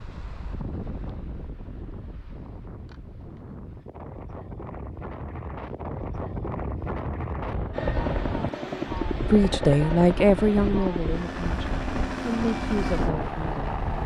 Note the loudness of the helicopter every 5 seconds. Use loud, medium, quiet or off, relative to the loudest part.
off, loud, loud.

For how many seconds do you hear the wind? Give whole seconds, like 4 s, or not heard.
14 s.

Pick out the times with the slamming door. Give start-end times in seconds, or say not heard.
not heard.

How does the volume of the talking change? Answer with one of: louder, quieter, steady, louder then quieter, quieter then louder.
quieter then louder.